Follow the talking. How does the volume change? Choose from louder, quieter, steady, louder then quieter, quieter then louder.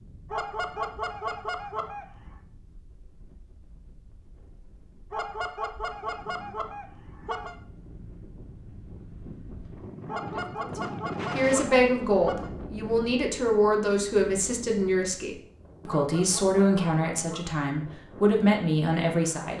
steady.